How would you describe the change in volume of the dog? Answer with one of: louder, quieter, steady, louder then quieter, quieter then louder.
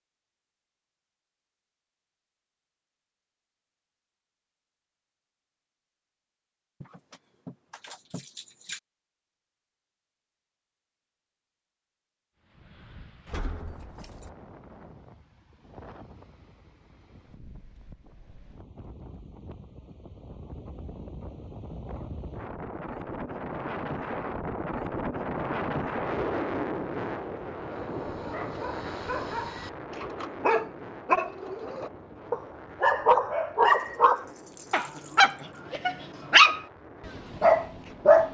louder.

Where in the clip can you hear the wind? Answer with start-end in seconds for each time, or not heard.
12.4-38.2.